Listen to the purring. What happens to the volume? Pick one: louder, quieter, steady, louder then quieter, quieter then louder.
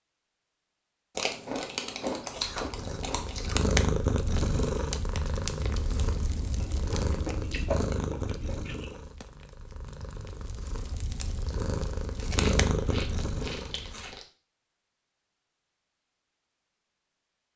quieter then louder.